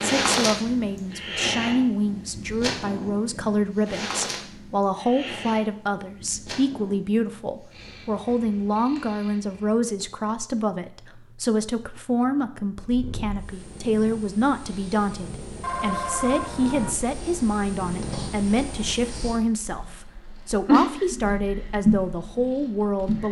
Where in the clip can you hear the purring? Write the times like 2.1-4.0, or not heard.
0.0-23.2.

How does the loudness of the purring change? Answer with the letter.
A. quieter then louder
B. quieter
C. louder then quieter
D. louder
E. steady
A.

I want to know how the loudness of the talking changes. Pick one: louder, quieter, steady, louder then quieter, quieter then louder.
steady.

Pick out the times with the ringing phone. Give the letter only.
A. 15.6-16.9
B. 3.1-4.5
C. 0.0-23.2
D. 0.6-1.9
A.